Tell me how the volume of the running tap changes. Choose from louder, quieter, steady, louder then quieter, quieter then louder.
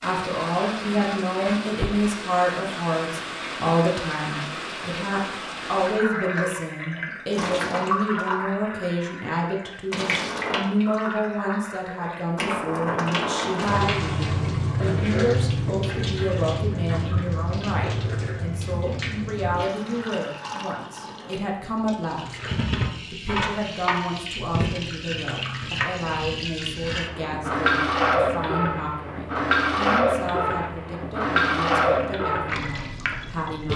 louder.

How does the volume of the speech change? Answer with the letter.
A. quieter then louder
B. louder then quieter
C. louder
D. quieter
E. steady
D.